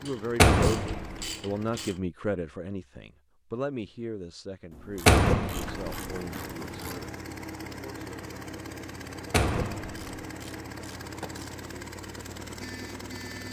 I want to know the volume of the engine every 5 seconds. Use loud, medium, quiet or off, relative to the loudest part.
medium, loud, loud.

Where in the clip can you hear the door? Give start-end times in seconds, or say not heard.
0.3-1.3, 5.0-5.9, 9.3-10.1.